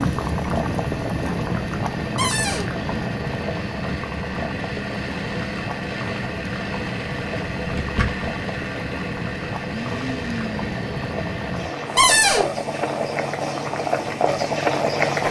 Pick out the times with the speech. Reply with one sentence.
The speech can't be heard in this clip.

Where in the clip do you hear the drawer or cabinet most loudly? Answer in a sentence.
The loudest moment of the drawer or cabinet is at 12 seconds.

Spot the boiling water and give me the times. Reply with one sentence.
You can hear the boiling water from 0.0 to 15.2 s.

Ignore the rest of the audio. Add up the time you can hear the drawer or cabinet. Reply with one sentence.
The drawer or cabinet can be heard for 2 seconds in total.